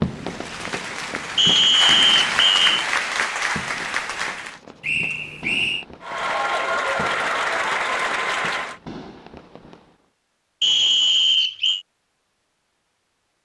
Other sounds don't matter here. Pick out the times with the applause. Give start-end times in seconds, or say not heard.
0.0-4.6, 6.0-8.8.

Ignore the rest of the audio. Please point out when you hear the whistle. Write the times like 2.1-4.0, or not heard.
1.4-2.7, 4.8-5.8, 10.6-11.8.